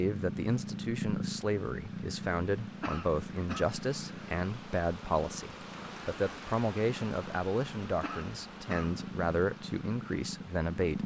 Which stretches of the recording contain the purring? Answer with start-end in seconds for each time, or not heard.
0.0-11.0.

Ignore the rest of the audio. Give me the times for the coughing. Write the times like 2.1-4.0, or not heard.
2.8-3.6, 8.0-9.0.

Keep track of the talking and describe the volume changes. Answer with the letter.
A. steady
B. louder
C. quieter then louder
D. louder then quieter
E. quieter
A.